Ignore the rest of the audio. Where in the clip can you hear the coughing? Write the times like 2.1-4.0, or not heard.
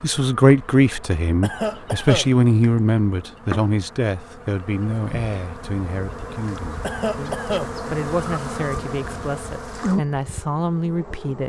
1.4-2.3, 6.8-7.8.